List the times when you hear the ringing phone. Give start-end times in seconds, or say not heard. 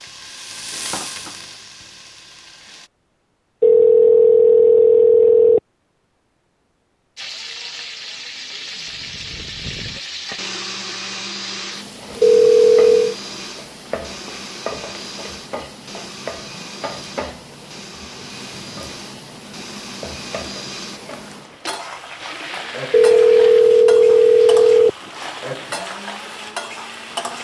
3.6-5.6, 12.2-13.2, 22.9-24.9.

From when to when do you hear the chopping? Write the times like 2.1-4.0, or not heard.
not heard.